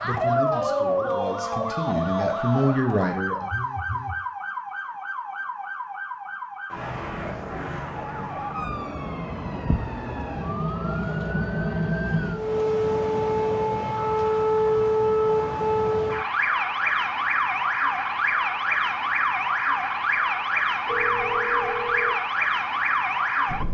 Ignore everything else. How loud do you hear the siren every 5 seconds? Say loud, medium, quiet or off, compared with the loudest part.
loud, medium, loud, loud, loud.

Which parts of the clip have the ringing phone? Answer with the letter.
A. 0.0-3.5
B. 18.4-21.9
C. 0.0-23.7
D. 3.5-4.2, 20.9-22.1
D.